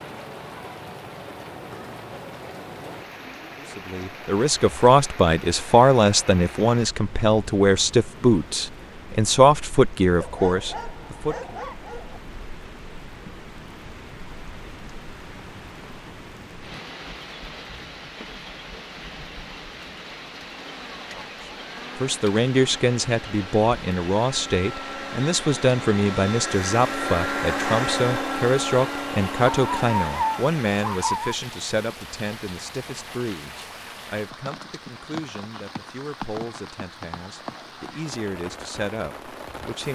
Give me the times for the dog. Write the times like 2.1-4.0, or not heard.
10.2-12.2, 29.5-31.4.